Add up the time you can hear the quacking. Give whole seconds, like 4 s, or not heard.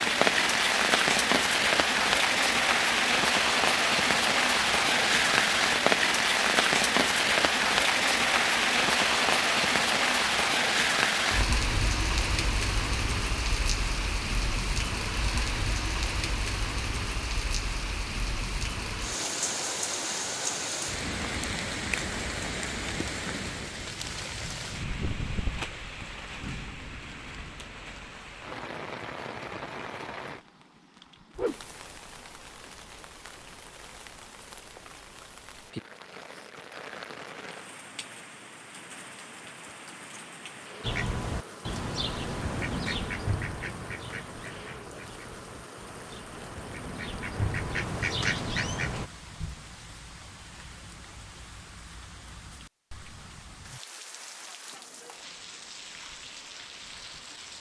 8 s.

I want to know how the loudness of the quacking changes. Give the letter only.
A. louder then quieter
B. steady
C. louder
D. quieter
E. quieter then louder
E.